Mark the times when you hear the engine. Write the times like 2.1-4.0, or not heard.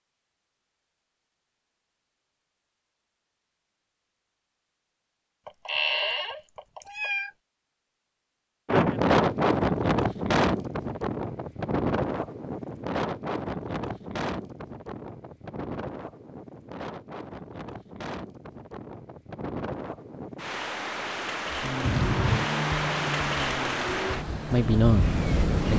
21.6-25.7.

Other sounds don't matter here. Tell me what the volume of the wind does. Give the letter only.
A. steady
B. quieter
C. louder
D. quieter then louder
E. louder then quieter
D.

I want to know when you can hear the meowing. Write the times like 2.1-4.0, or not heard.
5.5-7.3, 21.8-22.5.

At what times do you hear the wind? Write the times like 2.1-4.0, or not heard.
8.7-25.7.